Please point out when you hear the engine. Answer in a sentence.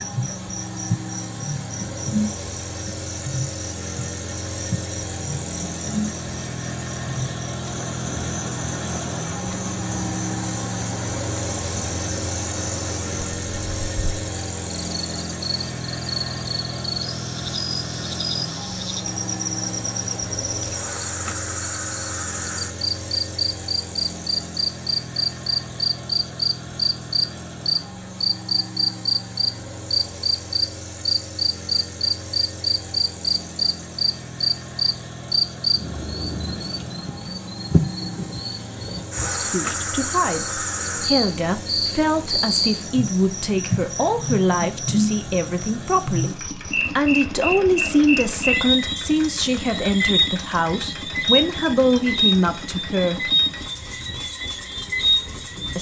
You can hear the engine from 0.0 to 55.7 s.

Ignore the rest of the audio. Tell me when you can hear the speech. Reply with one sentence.
You can hear the speech from 39.3 to 53.3 s.